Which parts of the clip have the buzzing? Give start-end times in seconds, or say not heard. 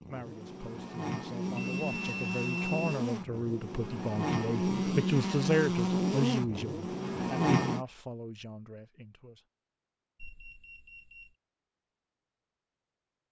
0.0-7.8.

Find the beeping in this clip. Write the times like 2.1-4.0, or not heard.
1.6-3.0, 10.2-11.3.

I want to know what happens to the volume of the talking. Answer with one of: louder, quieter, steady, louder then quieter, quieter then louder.
louder then quieter.